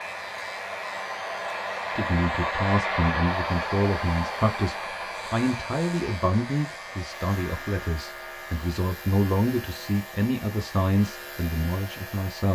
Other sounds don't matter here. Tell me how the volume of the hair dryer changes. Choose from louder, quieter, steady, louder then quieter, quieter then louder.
quieter.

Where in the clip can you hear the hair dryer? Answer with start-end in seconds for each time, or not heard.
0.0-12.2.